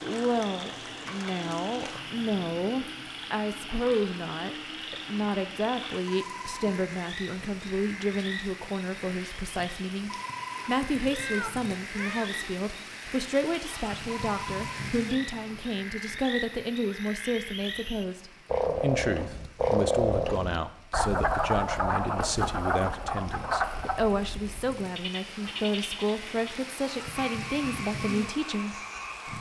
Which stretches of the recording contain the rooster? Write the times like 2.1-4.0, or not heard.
not heard.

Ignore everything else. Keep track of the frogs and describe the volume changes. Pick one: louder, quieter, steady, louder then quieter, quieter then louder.
louder then quieter.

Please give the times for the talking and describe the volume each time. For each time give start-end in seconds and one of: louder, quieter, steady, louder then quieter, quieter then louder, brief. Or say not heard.
0.0-29.3 steady.